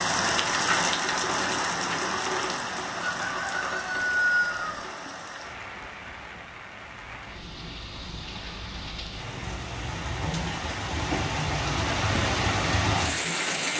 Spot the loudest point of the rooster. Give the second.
4 s.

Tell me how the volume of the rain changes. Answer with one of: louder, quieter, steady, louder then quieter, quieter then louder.
quieter then louder.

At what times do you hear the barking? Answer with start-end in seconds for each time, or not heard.
not heard.